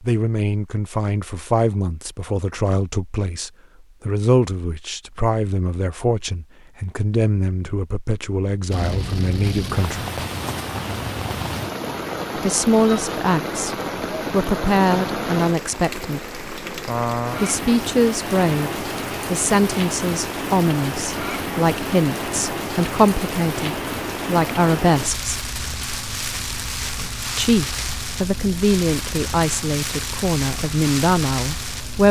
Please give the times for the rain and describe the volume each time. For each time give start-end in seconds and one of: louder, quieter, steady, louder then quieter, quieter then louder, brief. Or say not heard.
8.7-32.0 steady.